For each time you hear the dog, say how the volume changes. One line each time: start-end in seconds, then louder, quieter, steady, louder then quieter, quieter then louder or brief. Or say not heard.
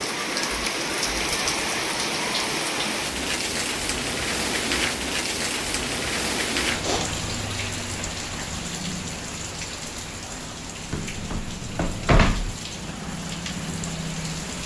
not heard.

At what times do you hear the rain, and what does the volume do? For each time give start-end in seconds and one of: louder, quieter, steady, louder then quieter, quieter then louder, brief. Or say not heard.
0.0-14.6 quieter.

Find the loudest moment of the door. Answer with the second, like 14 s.
12 s.